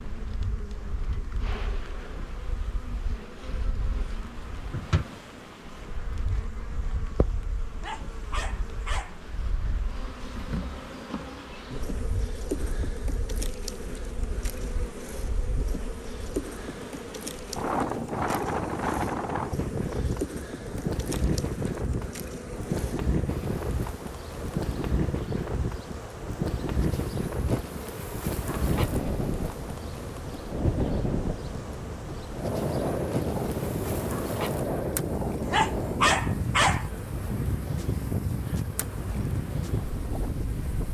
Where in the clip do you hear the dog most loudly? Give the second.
36 s.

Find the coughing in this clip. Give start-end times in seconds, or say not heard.
not heard.